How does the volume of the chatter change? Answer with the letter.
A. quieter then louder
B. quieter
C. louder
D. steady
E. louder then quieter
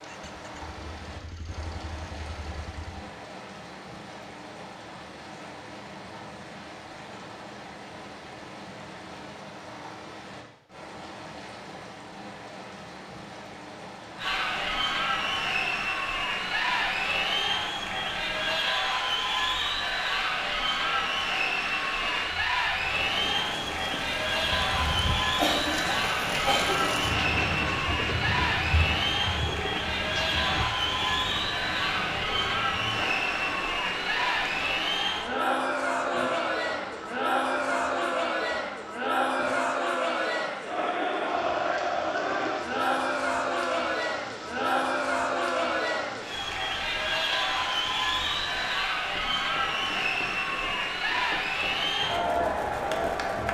D.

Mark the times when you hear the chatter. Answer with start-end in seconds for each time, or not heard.
14.2-53.4.